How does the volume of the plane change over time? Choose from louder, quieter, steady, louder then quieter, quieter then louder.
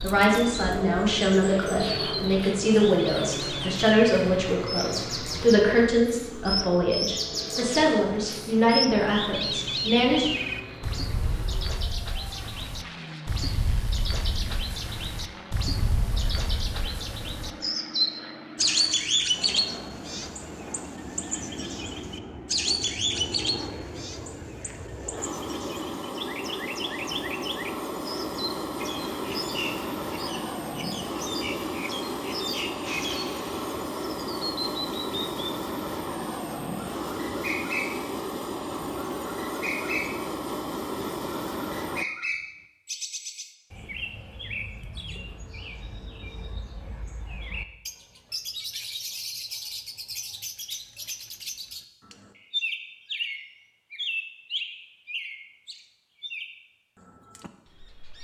quieter then louder.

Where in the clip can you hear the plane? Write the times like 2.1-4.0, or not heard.
0.0-42.0.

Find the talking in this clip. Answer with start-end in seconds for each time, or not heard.
0.0-10.2.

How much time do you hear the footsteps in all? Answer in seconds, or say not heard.
not heard.